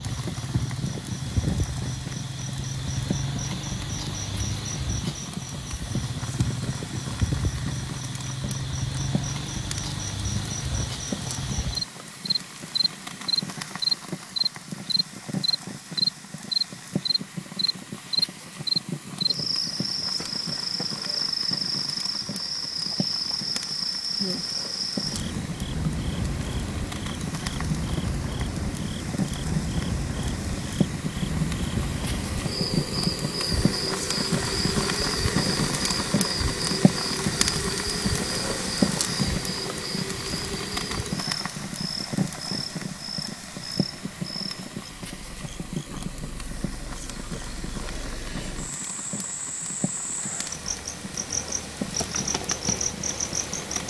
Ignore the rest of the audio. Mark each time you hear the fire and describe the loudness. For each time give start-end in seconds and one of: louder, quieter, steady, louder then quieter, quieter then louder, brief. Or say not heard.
0.0-53.8 louder then quieter.